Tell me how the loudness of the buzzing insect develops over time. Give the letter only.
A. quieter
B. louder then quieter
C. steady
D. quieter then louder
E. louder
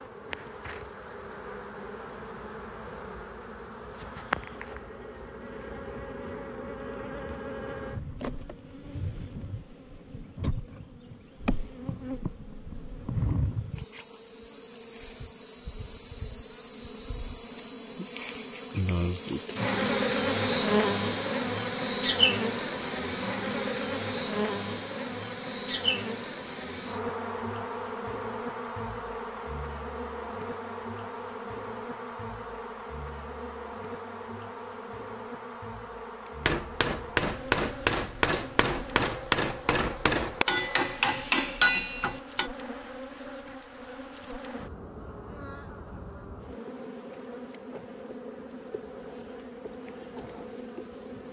B.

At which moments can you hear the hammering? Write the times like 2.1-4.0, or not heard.
36.5-42.5.